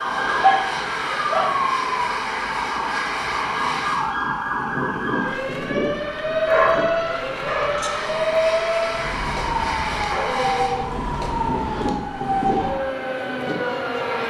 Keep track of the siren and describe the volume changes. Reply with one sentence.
The loudness of the siren stays about the same.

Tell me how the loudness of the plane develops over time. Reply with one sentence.
The loudness of the plane stays about the same.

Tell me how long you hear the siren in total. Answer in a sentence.
You can hear the siren for 14 seconds altogether.